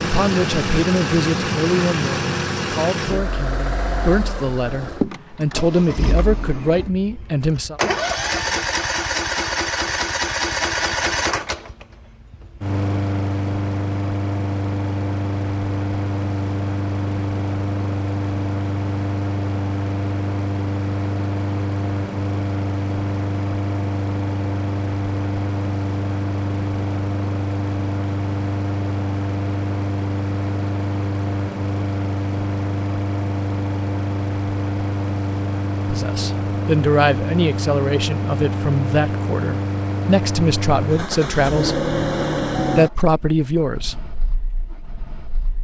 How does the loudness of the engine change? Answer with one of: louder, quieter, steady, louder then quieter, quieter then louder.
steady.